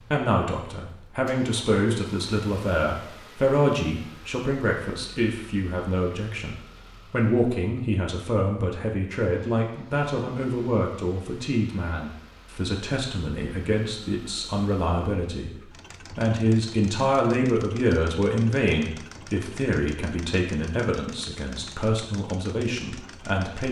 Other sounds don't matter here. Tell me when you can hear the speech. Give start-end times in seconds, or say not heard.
0.0-23.6.